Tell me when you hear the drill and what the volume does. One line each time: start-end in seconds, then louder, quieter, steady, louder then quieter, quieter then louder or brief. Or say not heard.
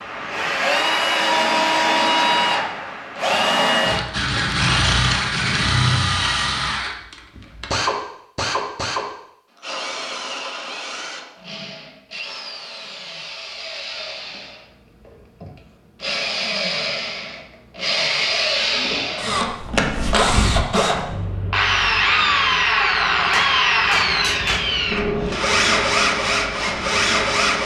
0.0-27.6 quieter then louder.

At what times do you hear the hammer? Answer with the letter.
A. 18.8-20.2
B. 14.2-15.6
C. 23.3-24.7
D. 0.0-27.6
C.